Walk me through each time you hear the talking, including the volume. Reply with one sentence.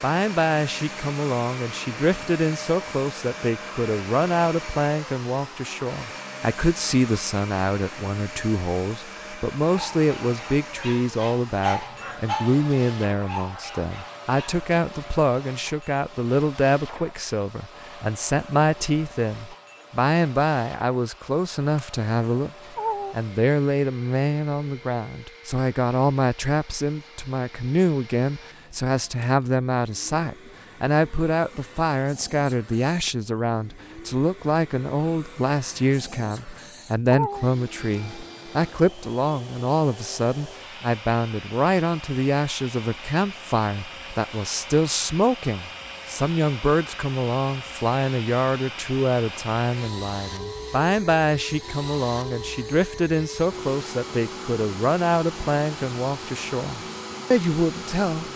You can hear the talking from 0.0 to 58.2 s, at a steady volume.